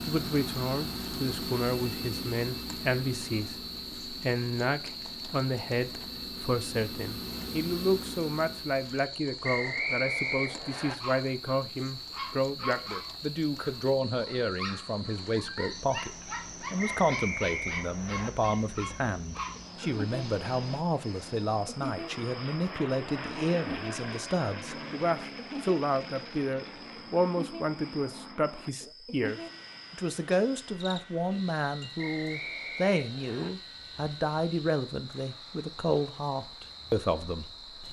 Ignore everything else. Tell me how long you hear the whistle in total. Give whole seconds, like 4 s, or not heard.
5 s.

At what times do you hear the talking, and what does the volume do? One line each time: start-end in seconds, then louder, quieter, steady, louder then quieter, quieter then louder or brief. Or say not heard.
0.1-37.8 steady.